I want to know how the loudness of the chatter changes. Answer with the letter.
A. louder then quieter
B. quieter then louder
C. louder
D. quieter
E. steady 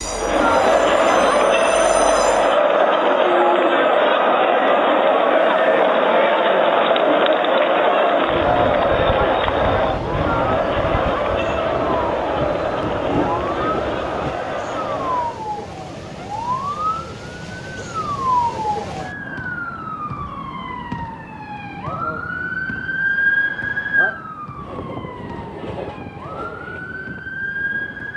D.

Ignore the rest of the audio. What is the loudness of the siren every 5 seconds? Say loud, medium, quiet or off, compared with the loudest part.
quiet, quiet, medium, loud, loud, medium.